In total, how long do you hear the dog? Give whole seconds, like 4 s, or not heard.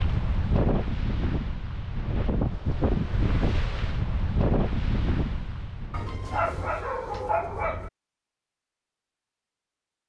2 s.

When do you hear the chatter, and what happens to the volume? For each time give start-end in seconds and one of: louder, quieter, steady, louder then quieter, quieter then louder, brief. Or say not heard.
not heard.